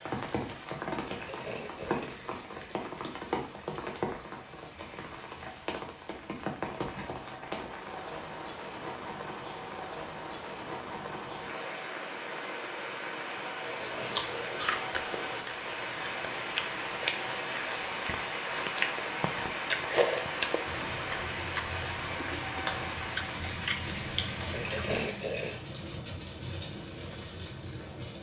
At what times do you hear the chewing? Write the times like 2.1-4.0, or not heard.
13.8-25.0.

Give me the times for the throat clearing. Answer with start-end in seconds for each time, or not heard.
1.1-2.1, 13.8-14.7, 24.5-25.6.